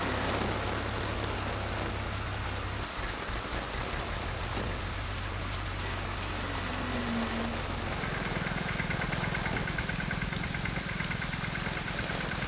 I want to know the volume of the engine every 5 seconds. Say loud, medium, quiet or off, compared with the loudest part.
medium, loud, loud.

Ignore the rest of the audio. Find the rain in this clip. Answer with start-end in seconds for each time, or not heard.
0.0-12.4.